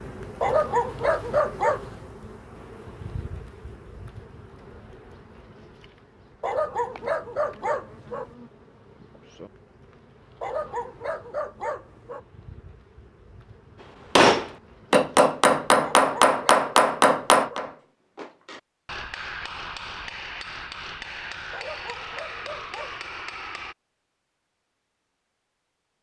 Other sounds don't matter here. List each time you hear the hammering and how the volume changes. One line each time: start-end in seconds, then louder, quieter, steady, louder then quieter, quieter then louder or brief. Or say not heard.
14.2-23.8 quieter.